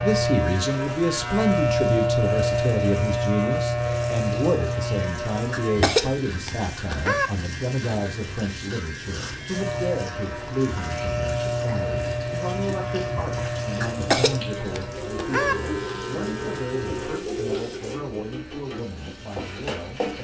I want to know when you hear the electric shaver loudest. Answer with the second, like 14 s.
2 s.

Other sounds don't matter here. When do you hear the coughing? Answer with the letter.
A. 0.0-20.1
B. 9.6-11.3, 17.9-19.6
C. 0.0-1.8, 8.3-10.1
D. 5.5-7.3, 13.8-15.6
D.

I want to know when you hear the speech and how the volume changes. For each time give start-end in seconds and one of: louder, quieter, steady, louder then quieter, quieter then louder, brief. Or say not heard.
0.0-20.1 quieter.